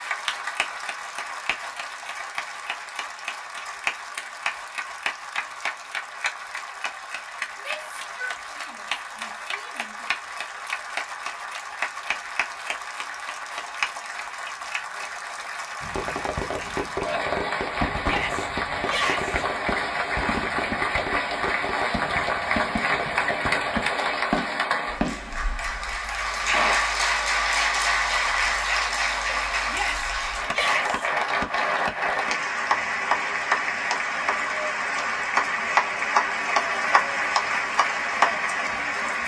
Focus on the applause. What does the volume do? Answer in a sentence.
The volume of the applause goes up.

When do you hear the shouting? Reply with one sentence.
You can hear the shouting from 7.6 to 10.1 s, from 18.0 to 19.4 s and from 29.6 to 31.1 s.